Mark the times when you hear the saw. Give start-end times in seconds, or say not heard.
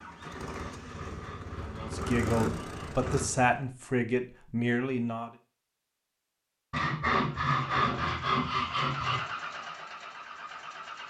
0.2-3.0, 6.7-9.2.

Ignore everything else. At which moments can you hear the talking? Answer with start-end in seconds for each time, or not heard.
1.8-5.3.